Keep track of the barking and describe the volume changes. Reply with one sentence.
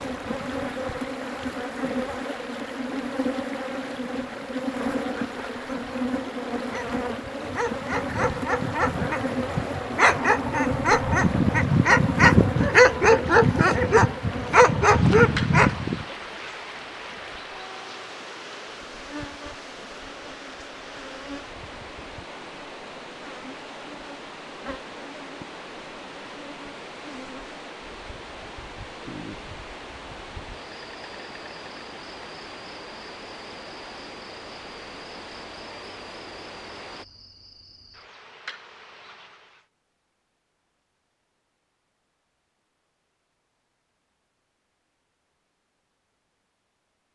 The volume of the barking goes up.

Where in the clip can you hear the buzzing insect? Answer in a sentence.
You can hear the buzzing insect from 0.0 to 39.6 s.